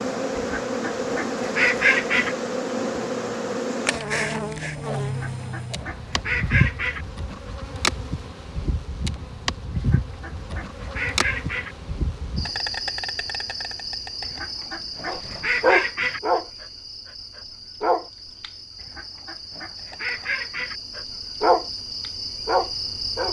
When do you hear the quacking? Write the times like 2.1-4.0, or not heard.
0.3-2.4, 5.0-7.0, 9.8-11.8, 14.2-16.2, 18.8-20.8.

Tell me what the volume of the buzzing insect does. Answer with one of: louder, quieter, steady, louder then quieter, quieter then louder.
quieter.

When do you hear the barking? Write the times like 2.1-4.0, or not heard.
15.1-18.5, 20.9-23.2.